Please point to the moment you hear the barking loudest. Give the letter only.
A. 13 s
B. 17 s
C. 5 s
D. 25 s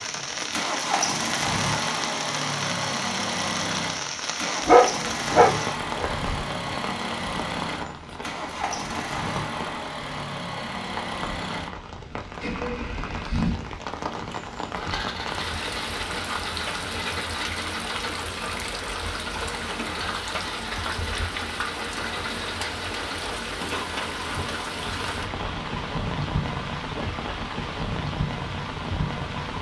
C.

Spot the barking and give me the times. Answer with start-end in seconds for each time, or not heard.
4.7-6.4.